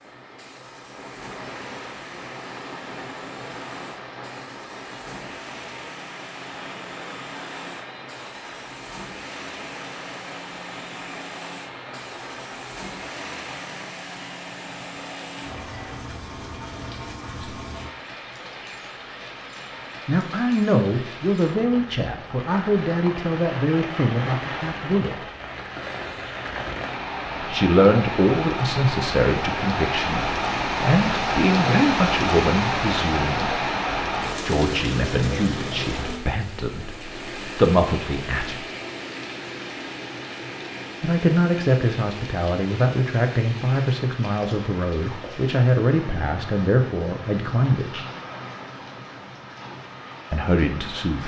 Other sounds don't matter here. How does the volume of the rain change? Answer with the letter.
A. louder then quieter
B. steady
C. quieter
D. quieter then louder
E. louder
A.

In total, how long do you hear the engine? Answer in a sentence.
The engine can be heard for 18 seconds in total.